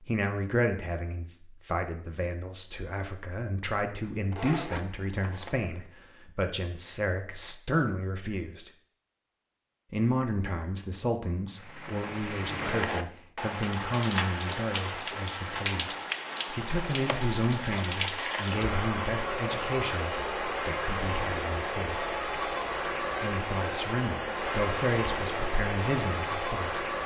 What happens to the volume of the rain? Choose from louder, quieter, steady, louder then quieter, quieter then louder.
steady.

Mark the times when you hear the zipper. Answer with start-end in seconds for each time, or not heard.
4.1-5.9.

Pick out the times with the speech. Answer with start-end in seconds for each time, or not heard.
0.0-8.7, 9.9-22.1, 23.2-26.9.